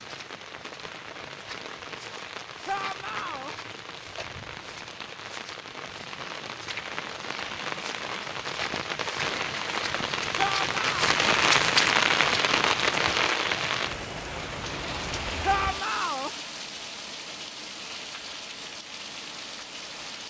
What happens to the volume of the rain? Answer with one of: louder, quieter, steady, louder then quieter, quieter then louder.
louder then quieter.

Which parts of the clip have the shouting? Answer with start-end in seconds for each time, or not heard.
2.6-3.5, 10.3-11.1, 15.4-16.3.